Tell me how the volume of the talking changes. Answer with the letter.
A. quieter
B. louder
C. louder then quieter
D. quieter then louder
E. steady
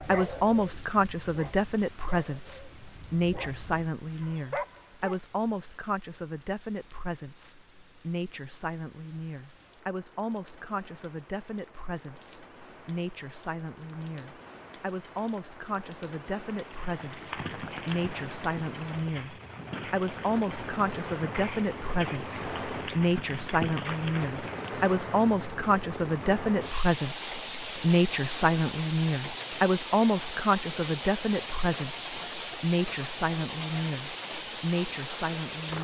D.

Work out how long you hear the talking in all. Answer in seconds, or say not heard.
36 s.